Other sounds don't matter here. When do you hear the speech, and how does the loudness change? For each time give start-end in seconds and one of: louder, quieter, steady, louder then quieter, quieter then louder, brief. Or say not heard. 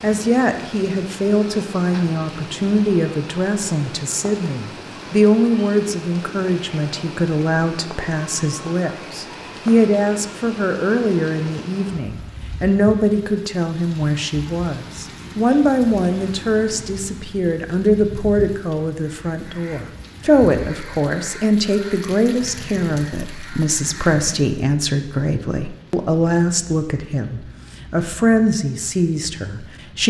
0.0-30.0 steady.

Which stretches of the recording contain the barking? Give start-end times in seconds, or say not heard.
not heard.